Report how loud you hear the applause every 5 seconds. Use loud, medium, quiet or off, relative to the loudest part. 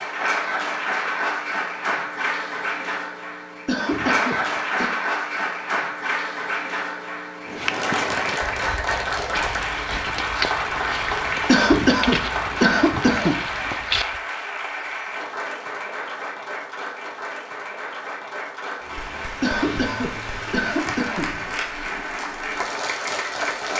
loud, loud, loud, medium, loud.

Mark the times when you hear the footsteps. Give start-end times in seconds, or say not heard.
7.5-14.2.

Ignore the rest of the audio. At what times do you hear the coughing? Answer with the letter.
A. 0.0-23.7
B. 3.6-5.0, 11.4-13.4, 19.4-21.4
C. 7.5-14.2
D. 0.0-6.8
B.